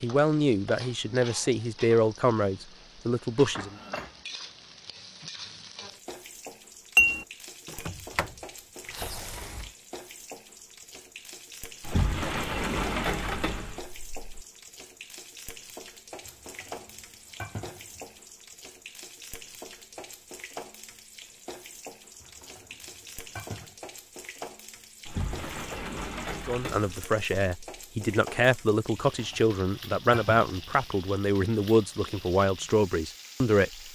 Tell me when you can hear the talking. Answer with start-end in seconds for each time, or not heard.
0.0-3.8, 26.4-33.7.